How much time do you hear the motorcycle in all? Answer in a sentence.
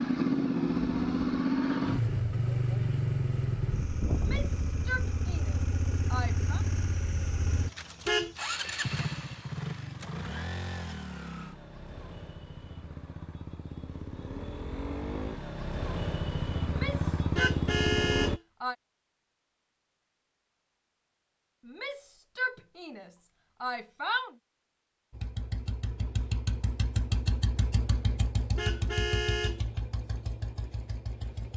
You can hear the motorcycle for 25 seconds altogether.